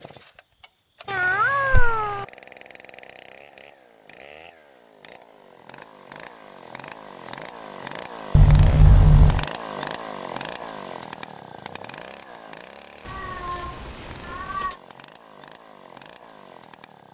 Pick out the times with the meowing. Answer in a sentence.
You can hear the meowing from 1.1 to 2.2 s, from 8.3 to 9.4 s and from 13.0 to 14.8 s.